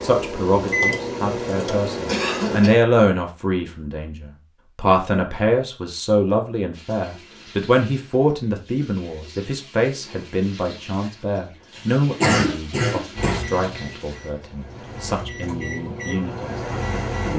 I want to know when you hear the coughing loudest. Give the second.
12 s.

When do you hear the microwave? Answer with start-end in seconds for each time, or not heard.
0.0-2.7, 13.2-17.3.